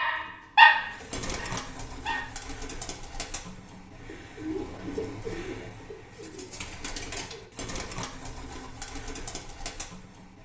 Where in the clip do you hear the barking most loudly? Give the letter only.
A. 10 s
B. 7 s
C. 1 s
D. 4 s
C.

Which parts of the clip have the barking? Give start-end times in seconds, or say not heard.
0.0-2.2.